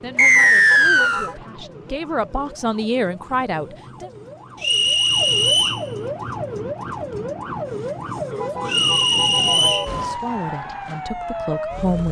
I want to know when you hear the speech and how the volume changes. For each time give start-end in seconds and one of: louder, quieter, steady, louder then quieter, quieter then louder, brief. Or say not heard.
0.0-4.1 quieter then louder
9.4-12.0 brief.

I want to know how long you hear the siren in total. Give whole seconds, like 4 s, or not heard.
12 s.